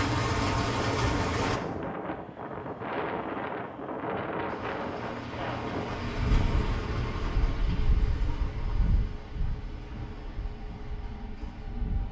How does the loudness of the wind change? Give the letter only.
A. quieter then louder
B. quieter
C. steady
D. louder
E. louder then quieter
B.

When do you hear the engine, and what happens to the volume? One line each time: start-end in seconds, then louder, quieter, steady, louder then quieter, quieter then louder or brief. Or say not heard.
0.0-1.6 brief
4.5-12.0 quieter.